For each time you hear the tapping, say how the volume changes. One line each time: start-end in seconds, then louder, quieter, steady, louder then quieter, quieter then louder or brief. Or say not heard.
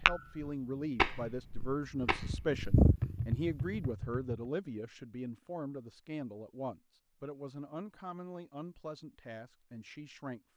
0.0-4.3 quieter then louder.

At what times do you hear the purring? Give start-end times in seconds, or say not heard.
0.0-3.8.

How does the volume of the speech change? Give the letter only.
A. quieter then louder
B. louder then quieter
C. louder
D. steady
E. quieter
E.